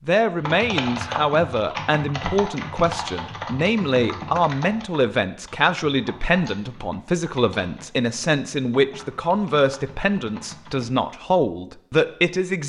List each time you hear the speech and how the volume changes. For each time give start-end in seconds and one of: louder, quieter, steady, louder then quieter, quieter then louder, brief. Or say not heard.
0.1-12.6 steady.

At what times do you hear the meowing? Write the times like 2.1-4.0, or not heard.
not heard.